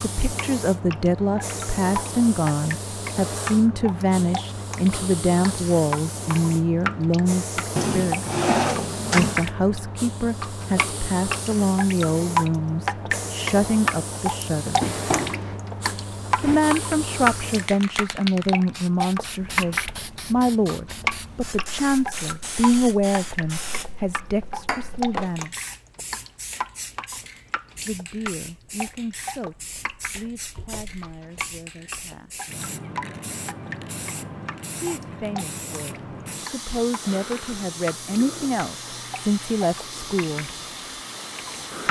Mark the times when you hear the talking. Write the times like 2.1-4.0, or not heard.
0.0-8.2, 9.1-14.9, 16.4-25.6, 27.9-32.5, 34.8-40.5.